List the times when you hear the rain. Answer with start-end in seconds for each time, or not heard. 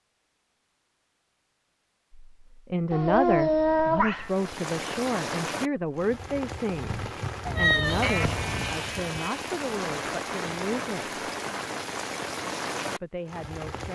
4.2-13.9.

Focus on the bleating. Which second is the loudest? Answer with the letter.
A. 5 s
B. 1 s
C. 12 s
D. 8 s
D.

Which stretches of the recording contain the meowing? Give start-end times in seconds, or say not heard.
2.9-4.3, 7.5-8.8.